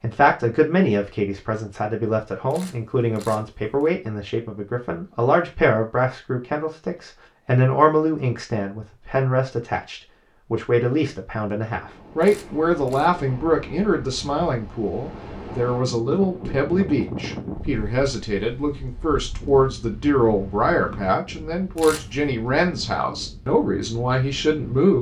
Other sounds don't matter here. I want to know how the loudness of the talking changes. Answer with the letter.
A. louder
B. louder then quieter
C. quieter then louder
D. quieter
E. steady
E.